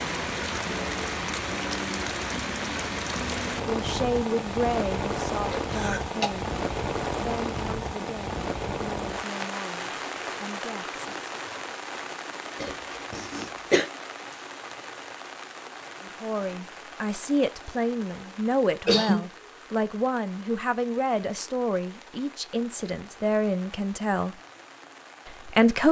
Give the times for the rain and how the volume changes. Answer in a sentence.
The rain can be heard from 0.0 to 25.8 s, getting quieter.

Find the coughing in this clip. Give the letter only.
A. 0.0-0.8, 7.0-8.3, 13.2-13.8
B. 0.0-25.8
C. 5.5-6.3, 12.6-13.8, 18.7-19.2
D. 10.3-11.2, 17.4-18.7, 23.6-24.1
C.